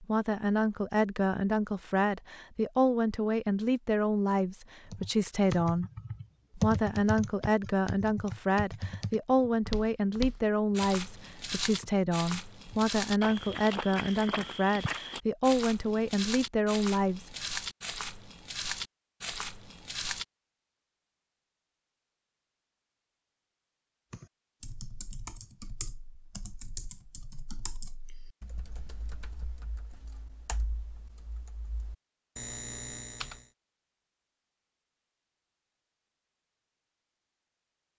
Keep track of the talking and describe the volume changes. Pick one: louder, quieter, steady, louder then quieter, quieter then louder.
steady.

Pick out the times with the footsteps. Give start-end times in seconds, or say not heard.
9.7-20.2.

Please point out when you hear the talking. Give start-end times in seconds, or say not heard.
0.0-5.9, 6.5-17.3.